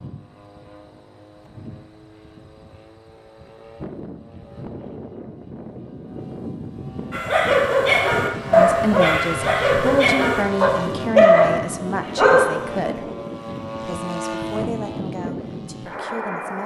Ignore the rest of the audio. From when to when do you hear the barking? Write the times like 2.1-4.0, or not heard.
7.1-12.6.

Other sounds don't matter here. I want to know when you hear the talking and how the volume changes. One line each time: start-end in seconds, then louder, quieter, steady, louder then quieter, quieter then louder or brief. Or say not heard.
8.4-13.1 quieter
13.8-16.6 brief.